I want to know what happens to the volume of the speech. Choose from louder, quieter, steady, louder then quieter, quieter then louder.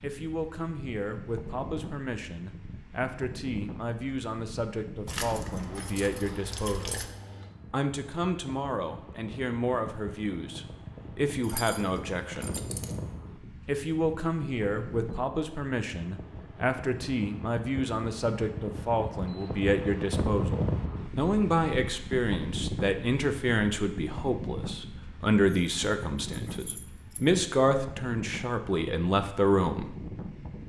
louder.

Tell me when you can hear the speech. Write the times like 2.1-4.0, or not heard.
0.0-7.0, 7.7-12.6, 13.7-29.9.